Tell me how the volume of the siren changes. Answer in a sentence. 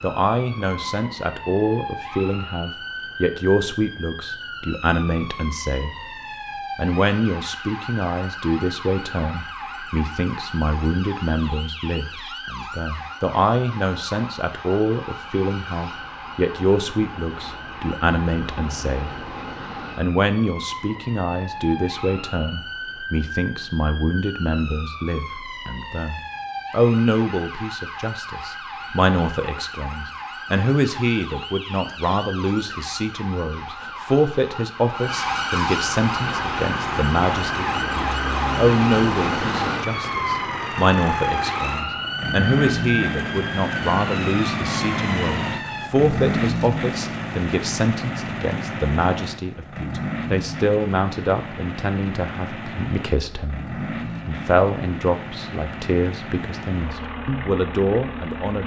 The volume of the siren goes up.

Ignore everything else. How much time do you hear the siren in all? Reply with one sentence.
You can hear the siren for 46 seconds altogether.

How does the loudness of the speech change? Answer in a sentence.
The loudness of the speech stays about the same.